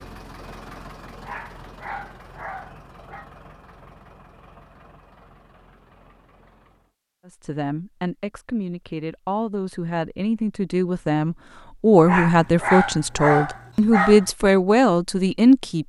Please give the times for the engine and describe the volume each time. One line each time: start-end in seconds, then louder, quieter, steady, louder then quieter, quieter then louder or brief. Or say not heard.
0.0-7.0 quieter.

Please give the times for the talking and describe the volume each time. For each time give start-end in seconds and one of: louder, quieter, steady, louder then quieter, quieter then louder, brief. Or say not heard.
7.2-15.8 louder.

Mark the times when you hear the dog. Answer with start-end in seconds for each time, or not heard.
1.2-3.3, 12.1-14.3.